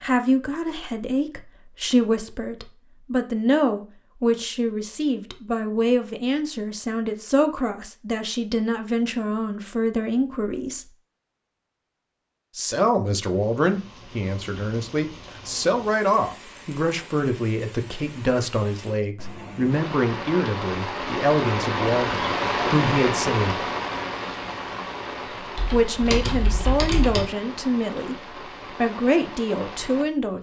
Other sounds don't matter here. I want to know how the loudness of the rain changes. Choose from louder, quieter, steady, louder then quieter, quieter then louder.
louder then quieter.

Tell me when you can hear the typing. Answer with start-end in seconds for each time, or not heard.
25.6-27.2.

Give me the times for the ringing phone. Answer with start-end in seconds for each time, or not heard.
not heard.